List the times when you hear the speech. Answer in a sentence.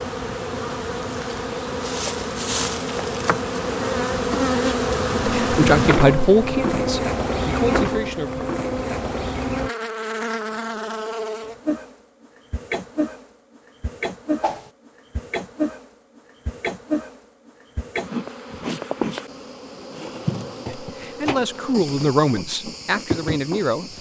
You can hear the speech from 5.2 to 8.4 s and from 20.8 to 23.9 s.